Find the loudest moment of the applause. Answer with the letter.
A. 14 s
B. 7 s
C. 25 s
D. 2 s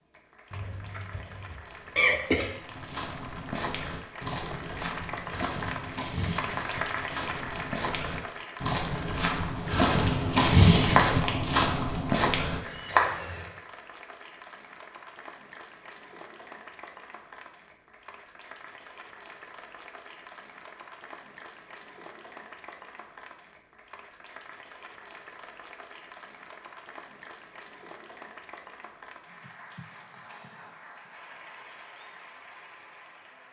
B.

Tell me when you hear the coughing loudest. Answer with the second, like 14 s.
2 s.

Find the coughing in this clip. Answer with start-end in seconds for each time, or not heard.
0.5-2.5.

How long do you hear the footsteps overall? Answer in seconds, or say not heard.
11 s.